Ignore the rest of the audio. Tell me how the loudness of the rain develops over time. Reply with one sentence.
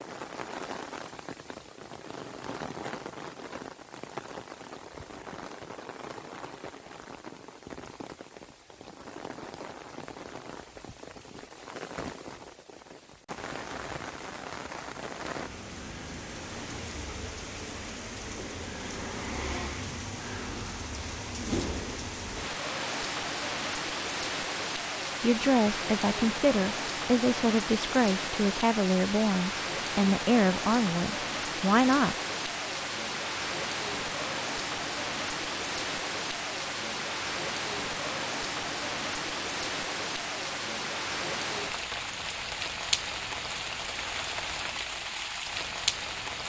The loudness of the rain goes up.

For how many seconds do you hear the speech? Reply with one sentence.
The speech can be heard for 7 seconds in total.